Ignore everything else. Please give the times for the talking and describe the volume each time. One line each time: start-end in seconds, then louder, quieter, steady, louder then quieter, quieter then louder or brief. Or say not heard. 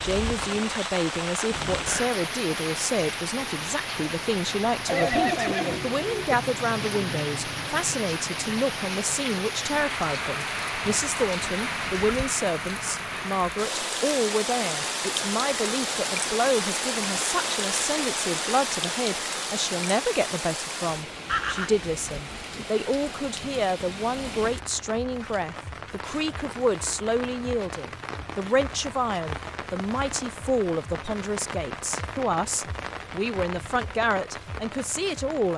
0.0-35.5 steady.